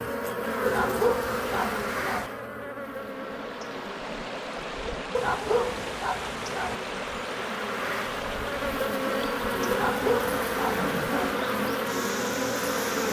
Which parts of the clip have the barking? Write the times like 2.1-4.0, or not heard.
0.7-2.3, 5.1-6.8, 9.7-11.3.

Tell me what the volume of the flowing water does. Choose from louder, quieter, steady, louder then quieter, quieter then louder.
steady.